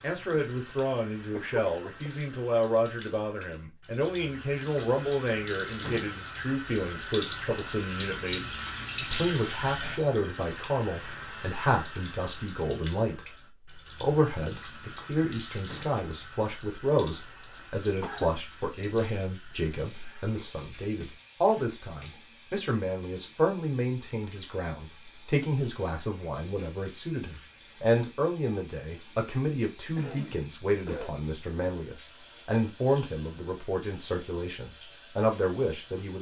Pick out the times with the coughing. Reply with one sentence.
The coughing can be heard from 1.3 to 2.1 s, from 17.1 to 18.4 s and from 29.9 to 31.1 s.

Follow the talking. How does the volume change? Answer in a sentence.
The loudness of the talking stays about the same.